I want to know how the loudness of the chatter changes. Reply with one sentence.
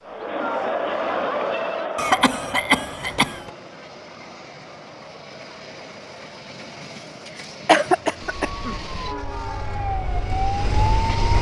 The volume of the chatter goes down.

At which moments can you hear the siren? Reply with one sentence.
You can hear the siren from 8.4 to 11.3 s.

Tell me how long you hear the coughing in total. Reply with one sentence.
You can hear the coughing for 3 seconds altogether.